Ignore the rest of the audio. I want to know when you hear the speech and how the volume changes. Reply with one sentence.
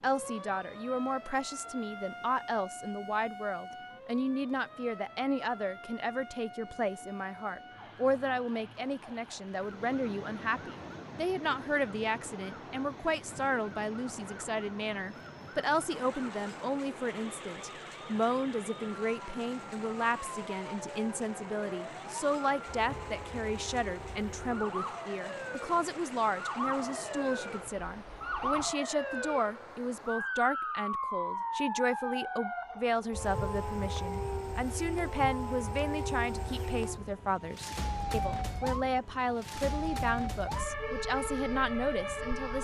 You can hear the speech from 0.0 to 42.6 s, at a steady volume.